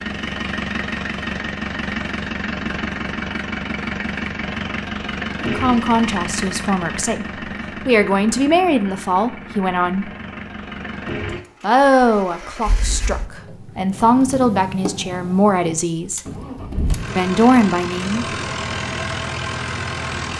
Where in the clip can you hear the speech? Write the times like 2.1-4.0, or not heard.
5.4-10.1, 11.6-16.2, 17.1-18.4.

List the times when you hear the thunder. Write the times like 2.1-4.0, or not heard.
not heard.